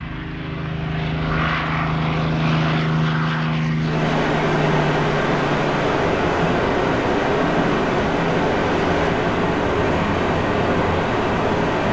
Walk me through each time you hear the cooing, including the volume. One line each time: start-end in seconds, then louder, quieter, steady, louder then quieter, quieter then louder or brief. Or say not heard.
not heard.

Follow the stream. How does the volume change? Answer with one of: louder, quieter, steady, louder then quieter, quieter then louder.
steady.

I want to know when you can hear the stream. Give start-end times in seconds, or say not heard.
3.8-11.8.